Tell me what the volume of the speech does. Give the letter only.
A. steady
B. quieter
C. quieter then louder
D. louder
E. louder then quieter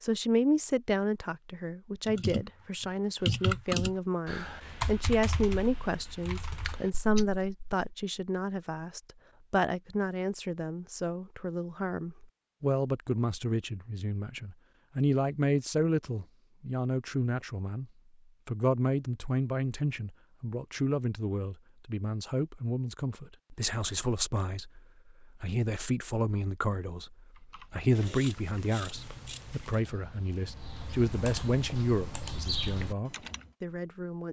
A.